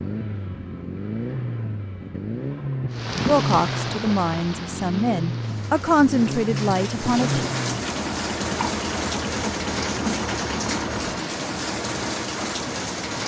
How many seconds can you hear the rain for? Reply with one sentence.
You can hear the rain for 10 seconds altogether.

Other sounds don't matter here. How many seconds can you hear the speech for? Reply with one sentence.
The speech can be heard for 4 seconds in total.